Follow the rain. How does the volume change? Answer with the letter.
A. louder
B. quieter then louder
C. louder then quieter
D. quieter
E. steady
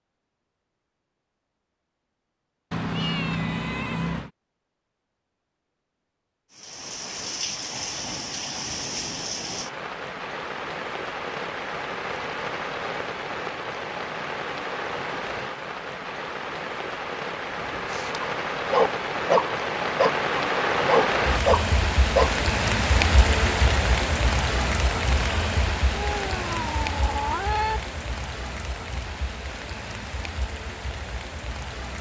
C.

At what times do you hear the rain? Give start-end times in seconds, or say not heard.
6.5-31.9.